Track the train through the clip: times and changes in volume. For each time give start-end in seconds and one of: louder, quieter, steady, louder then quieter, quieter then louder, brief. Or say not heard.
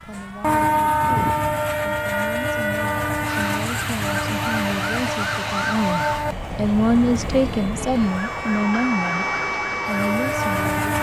0.1-10.9 quieter.